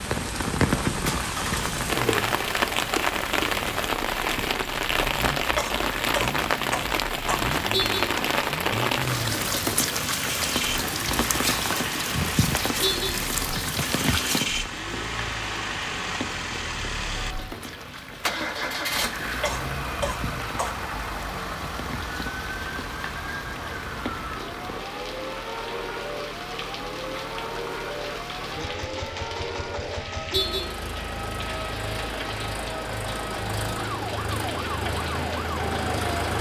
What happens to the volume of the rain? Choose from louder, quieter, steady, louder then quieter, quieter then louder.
quieter.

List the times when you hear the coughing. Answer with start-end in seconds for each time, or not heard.
5.5-7.4, 19.4-20.8.